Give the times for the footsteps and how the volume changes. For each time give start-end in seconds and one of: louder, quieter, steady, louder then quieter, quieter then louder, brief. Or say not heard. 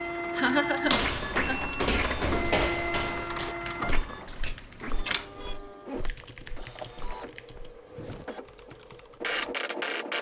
0.8-8.2 quieter.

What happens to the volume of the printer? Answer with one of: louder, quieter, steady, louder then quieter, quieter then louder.
quieter then louder.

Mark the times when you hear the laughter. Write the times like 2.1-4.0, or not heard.
0.3-1.8.